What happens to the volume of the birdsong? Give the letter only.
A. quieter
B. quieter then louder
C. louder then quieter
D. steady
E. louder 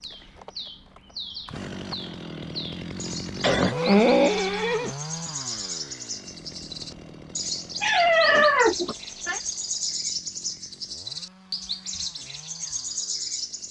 E.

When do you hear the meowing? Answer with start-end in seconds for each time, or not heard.
7.8-9.4.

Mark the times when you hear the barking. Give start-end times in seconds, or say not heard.
not heard.